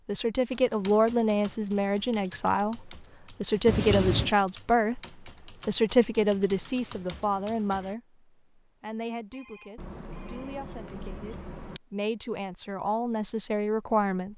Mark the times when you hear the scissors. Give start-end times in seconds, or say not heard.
3.6-4.3, 9.8-11.8.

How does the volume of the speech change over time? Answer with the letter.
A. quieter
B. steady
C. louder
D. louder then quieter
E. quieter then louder
E.